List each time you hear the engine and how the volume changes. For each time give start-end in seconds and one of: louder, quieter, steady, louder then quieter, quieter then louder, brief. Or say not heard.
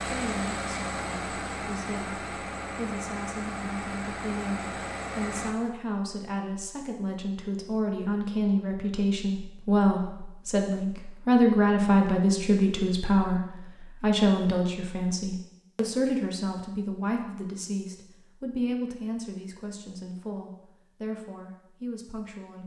0.0-5.5 steady.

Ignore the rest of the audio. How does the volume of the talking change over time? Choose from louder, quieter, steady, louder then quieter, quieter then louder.
louder then quieter.